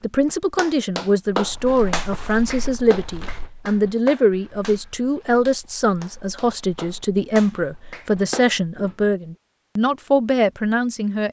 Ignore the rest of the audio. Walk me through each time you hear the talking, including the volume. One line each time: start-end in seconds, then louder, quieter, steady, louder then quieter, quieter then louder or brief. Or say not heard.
0.0-11.2 steady.